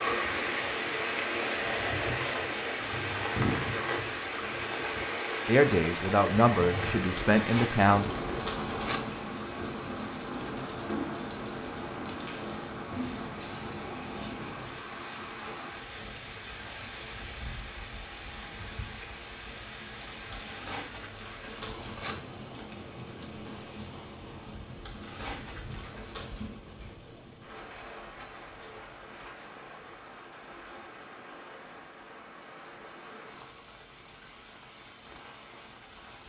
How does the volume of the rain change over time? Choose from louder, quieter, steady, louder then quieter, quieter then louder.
quieter.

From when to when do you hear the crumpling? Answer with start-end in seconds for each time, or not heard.
7.2-9.0, 20.3-22.1, 24.8-26.5.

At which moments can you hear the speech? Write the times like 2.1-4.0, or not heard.
5.5-8.1.